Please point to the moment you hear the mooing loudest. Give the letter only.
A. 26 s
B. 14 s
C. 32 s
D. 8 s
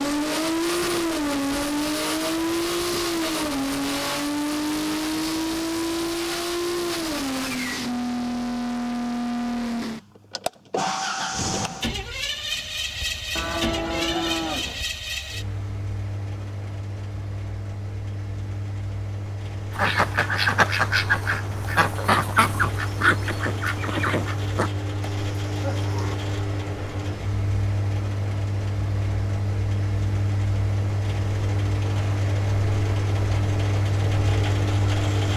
B.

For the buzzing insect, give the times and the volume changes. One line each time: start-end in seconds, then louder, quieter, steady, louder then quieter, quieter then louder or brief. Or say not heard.
not heard.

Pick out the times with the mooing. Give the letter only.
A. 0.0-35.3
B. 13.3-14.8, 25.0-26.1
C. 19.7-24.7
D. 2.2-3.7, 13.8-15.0
B.